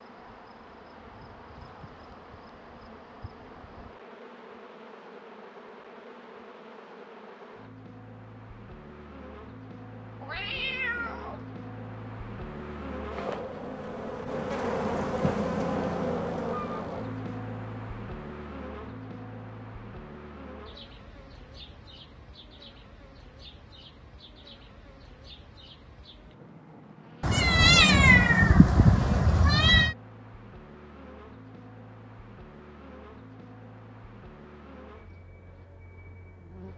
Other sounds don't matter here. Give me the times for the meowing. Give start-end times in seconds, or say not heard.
10.2-11.4, 27.2-29.9.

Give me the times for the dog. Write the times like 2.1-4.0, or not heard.
not heard.